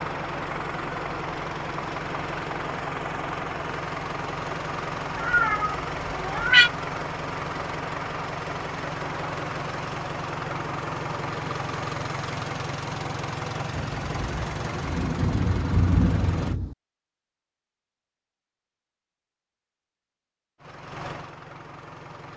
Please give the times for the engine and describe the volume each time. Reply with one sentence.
The engine can be heard from 0.0 to 16.6 s, at a steady volume; and briefly from 20.6 to 22.3 s.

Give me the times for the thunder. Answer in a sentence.
The thunder can be heard from 13.7 to 16.8 s.